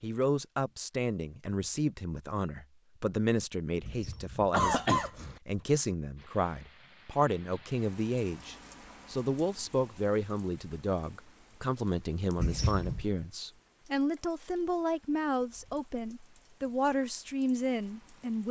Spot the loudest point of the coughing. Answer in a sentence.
The loudest moment of the coughing is at 5 seconds.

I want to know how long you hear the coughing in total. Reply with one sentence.
The coughing can be heard for 2 seconds in total.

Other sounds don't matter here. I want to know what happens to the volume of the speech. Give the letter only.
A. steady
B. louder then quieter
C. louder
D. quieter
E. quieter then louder
A.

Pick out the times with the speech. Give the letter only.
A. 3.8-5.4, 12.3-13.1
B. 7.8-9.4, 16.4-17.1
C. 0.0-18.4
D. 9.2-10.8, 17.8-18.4
C.